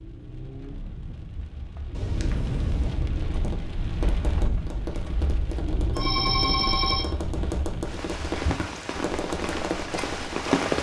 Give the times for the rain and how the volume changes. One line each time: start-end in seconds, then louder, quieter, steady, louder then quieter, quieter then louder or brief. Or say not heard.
0.0-10.7 louder.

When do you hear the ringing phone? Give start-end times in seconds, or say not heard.
1.9-3.0, 6.0-7.2.